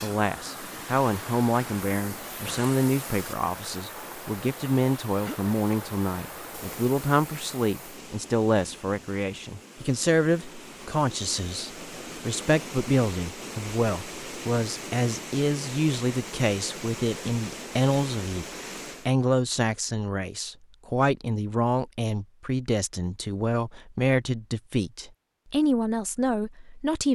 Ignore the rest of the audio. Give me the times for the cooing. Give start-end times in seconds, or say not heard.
not heard.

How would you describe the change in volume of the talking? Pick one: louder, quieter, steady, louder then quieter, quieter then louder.
steady.